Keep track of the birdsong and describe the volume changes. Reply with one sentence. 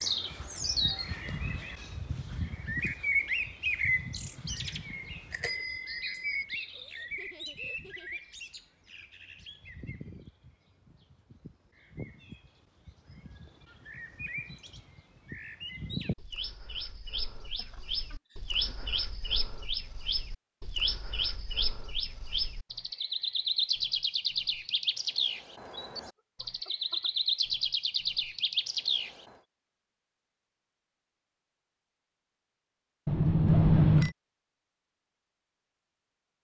The volume of the birdsong goes down, then up.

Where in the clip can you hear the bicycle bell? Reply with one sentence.
The bicycle bell can be heard from 5.3 to 6.2 s and from 33.0 to 34.1 s.